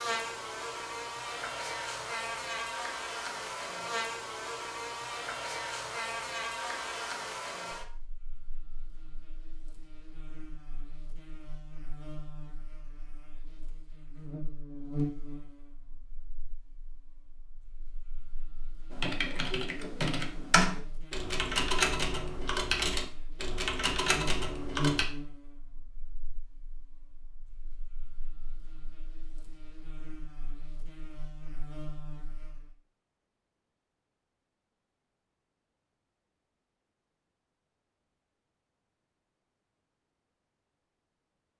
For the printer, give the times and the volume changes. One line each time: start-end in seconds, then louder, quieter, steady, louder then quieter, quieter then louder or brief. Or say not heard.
not heard.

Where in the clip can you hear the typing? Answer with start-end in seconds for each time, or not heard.
18.9-25.1.